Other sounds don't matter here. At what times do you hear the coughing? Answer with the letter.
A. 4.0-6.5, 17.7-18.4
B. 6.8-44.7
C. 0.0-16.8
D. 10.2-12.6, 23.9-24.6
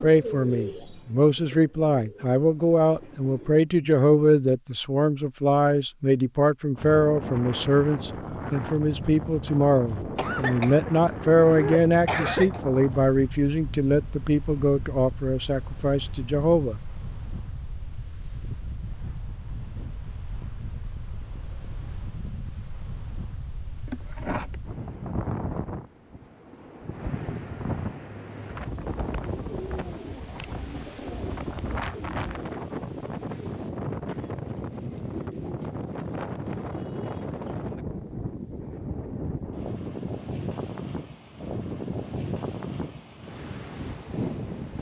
D.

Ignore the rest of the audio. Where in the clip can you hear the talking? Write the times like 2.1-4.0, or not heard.
0.0-16.8.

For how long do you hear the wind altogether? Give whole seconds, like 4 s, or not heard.
38 s.